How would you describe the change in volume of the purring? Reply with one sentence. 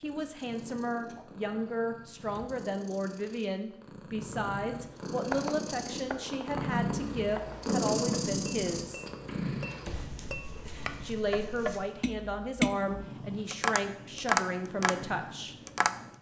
The loudness of the purring goes up, then down.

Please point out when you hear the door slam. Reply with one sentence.
You can hear the door slam from 2.1 to 2.6 s and from 9.7 to 10.1 s.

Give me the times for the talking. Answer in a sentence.
The talking can be heard from 0.0 to 9.1 s and from 11.0 to 15.6 s.